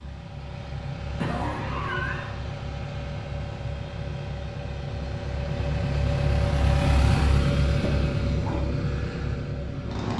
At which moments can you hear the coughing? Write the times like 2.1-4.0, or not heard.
1.2-2.4, 7.8-8.7.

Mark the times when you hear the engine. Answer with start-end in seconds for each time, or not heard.
0.0-10.1.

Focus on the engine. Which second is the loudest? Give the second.
7 s.